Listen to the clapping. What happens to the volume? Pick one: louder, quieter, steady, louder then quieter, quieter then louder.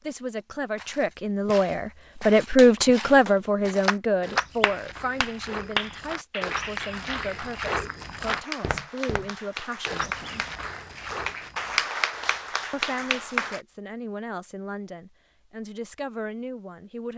quieter then louder.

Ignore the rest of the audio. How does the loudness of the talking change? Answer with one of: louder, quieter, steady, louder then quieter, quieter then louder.
quieter.